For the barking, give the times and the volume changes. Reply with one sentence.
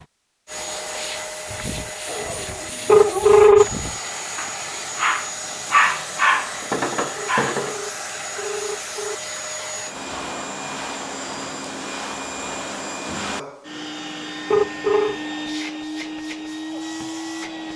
You can hear the barking from 1.4 to 7.8 s, getting louder then quieter.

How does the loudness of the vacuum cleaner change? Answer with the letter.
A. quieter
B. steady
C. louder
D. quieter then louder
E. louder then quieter
B.